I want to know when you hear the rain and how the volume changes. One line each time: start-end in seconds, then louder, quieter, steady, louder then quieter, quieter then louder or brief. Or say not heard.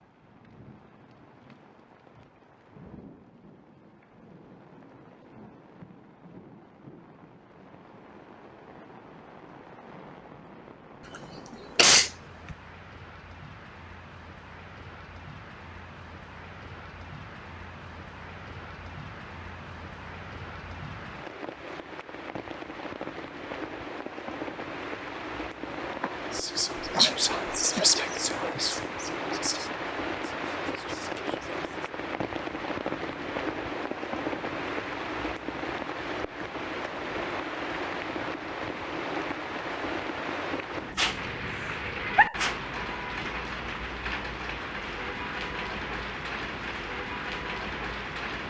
0.0-48.4 louder.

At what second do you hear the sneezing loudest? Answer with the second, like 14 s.
12 s.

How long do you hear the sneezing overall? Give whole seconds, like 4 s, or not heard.
5 s.